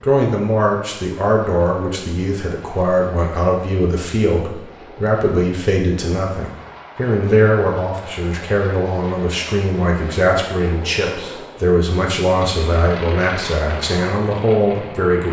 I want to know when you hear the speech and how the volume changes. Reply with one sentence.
The speech can be heard from 0.0 to 15.2 s, at a steady volume.